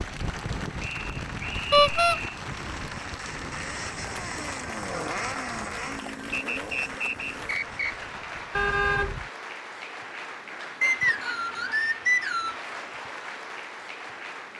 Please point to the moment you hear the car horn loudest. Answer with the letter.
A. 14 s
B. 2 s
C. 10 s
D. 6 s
B.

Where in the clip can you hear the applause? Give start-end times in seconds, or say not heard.
0.0-14.5.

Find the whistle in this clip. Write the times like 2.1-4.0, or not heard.
0.8-2.2, 6.3-8.0, 10.8-12.6.